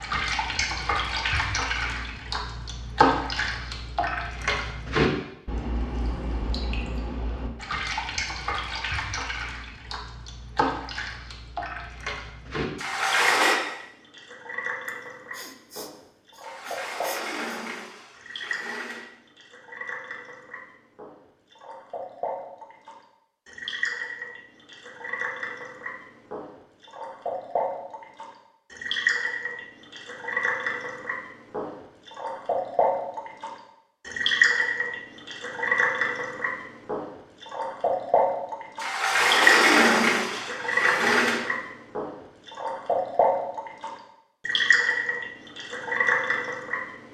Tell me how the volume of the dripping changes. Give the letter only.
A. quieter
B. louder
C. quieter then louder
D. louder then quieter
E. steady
C.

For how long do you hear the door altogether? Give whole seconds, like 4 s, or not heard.
6 s.